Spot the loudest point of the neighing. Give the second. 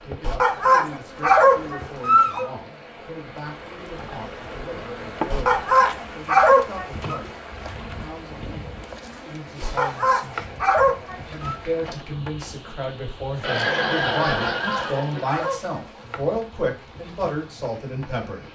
14 s.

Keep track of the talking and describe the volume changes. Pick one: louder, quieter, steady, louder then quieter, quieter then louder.
louder.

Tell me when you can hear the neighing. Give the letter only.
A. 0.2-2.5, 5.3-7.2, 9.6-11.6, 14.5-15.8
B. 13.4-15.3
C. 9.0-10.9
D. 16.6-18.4
B.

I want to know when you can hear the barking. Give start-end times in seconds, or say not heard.
0.2-2.5, 5.3-7.2, 9.6-11.6, 14.5-15.8.